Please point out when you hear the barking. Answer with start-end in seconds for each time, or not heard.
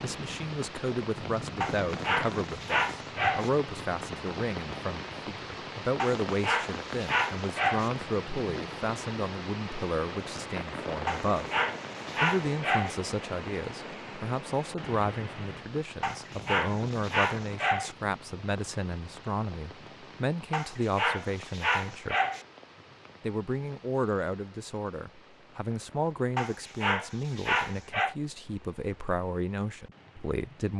1.6-3.5, 6.0-7.9, 11.1-12.9, 16.0-17.9, 20.5-22.4, 26.4-28.1.